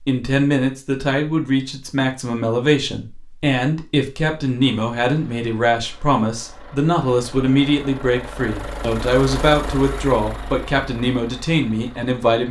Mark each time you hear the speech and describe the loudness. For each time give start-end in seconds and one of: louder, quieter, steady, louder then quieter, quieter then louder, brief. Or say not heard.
0.0-12.4 steady.